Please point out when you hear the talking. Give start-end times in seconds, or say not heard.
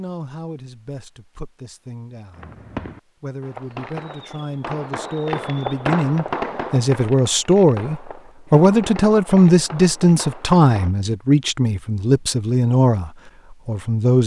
0.0-2.5, 3.2-14.2.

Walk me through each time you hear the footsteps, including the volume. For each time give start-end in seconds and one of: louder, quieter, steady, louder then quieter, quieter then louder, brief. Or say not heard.
not heard.